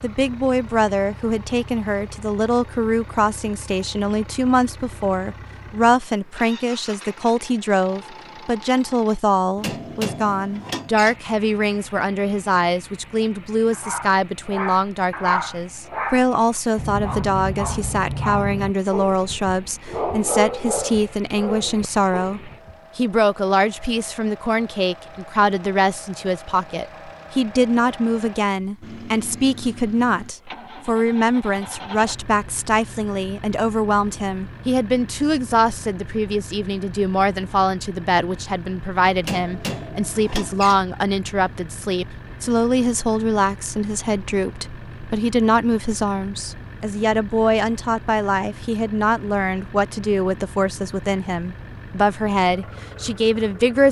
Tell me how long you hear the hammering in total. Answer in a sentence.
The hammering can be heard for 3 seconds in total.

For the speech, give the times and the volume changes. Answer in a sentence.
The speech can be heard from 0.0 to 53.8 s, at a steady volume.